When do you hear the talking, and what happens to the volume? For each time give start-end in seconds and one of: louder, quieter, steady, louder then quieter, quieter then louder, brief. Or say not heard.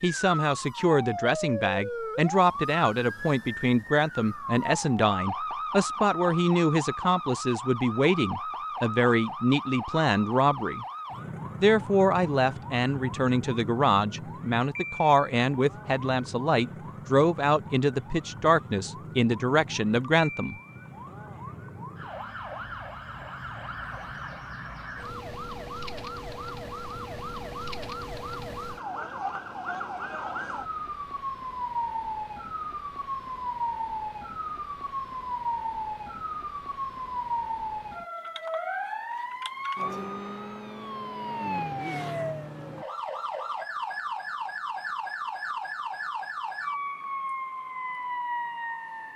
0.0-10.8 steady
11.6-20.6 steady.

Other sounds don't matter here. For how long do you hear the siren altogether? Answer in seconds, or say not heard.
49 s.